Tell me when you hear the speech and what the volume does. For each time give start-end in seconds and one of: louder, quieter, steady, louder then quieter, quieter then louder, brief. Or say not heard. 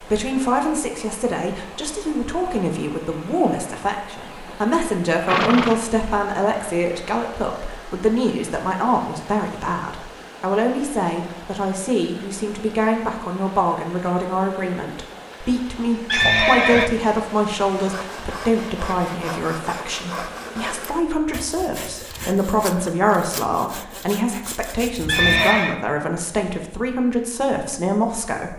0.0-28.5 steady.